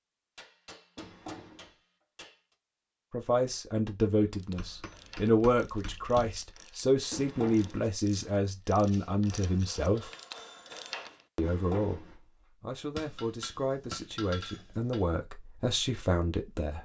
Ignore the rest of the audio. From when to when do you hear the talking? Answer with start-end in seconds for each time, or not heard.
3.1-10.1, 11.3-16.8.